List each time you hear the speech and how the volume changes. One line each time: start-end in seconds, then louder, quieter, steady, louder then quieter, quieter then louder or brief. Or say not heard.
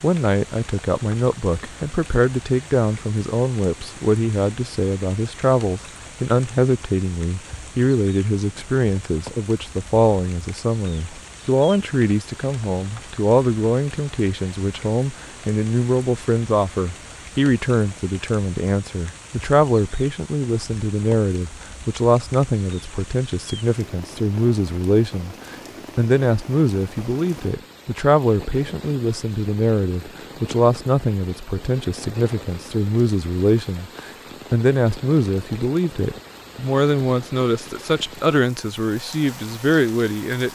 0.0-40.5 steady.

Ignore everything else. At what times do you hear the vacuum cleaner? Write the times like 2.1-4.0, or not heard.
not heard.